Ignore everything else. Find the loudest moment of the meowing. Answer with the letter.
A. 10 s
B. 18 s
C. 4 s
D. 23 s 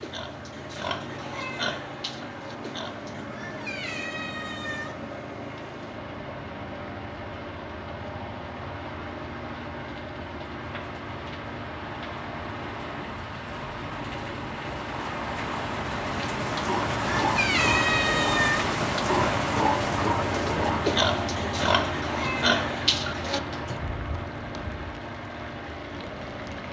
B.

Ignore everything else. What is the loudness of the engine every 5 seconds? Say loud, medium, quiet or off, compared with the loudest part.
medium, medium, medium, loud, loud, medium.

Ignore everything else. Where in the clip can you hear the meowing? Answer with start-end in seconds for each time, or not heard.
3.1-5.0, 16.9-18.6.